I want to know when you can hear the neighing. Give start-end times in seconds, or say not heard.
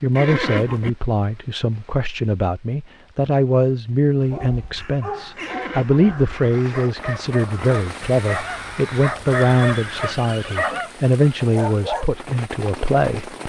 0.1-0.9, 5.3-6.2, 9.6-10.8.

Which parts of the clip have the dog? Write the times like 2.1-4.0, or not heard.
4.2-12.1.